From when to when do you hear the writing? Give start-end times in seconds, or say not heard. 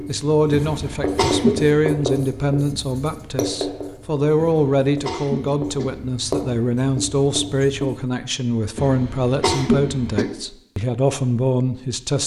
0.0-8.0.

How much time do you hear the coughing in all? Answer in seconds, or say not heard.
4 s.